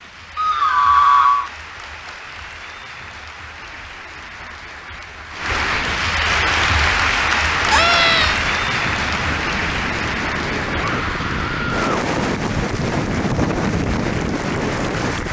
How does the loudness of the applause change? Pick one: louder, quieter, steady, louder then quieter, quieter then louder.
louder then quieter.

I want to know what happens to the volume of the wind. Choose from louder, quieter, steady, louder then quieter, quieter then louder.
louder.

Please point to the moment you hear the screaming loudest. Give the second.
1 s.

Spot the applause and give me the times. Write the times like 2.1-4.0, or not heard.
0.0-15.2.